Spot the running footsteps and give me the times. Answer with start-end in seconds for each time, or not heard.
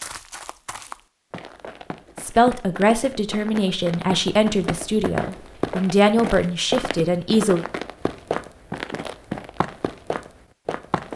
0.0-11.1.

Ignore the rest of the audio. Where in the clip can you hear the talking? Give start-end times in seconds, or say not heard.
2.2-7.7.